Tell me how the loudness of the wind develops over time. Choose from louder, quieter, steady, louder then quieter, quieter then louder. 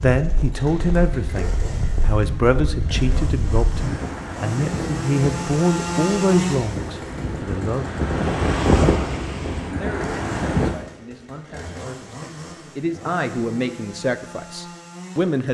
louder.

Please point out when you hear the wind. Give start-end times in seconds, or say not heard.
0.0-10.8.